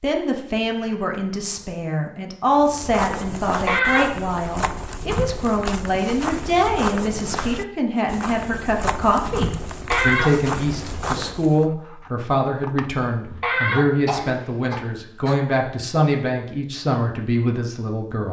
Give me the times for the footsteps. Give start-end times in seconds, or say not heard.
2.5-11.7.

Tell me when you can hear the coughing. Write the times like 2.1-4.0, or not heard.
3.6-4.2, 9.9-10.4, 13.4-15.3.